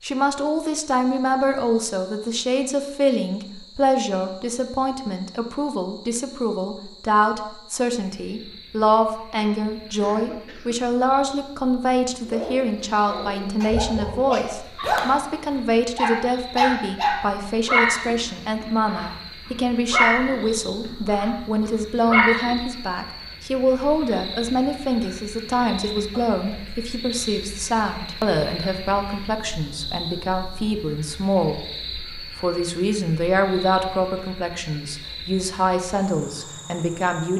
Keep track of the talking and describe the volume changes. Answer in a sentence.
The loudness of the talking stays about the same.